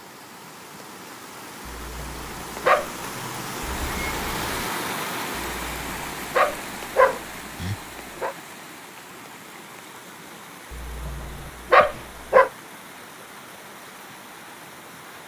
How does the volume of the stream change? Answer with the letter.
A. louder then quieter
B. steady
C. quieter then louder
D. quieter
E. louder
A.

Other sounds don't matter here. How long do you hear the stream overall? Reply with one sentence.
You can hear the stream for 15 seconds altogether.